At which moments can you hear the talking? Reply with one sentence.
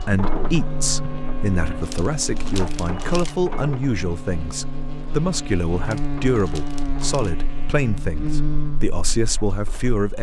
You can hear the talking from 0.1 to 10.1 s.